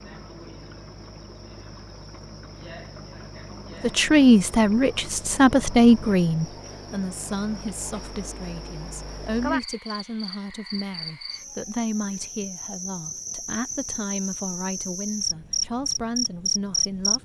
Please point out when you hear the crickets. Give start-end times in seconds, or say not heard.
0.0-17.2.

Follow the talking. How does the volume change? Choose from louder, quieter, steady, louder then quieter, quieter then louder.
quieter.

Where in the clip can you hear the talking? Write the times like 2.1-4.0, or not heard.
3.8-17.2.